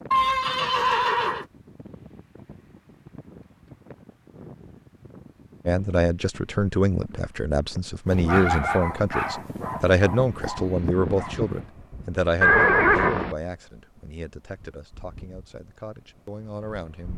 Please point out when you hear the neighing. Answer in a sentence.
The neighing can be heard from 0.1 to 1.4 s, from 8.1 to 8.7 s and from 12.4 to 13.3 s.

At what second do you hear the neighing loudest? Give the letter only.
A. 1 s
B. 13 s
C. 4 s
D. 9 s
B.